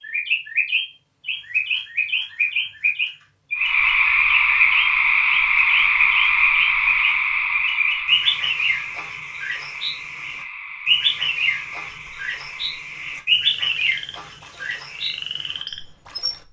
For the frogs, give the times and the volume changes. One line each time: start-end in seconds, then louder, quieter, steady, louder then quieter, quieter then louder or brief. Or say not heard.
3.5-16.4 quieter.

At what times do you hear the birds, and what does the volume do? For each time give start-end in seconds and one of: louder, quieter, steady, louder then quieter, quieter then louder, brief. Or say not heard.
0.0-16.3 steady.